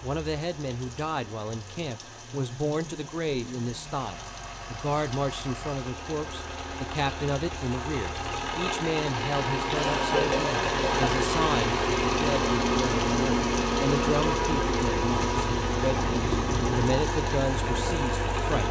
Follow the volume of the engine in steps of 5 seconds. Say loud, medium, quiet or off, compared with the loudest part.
quiet, medium, loud, loud.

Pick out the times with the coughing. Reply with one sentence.
The coughing can be heard from 9.8 to 11.1 s.